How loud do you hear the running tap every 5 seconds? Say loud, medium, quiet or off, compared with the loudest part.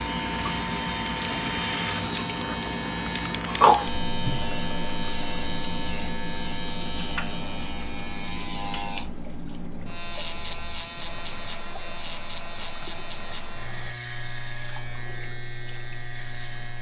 loud, quiet, quiet, quiet.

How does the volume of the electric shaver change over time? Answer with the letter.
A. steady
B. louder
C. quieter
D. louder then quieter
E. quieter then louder
C.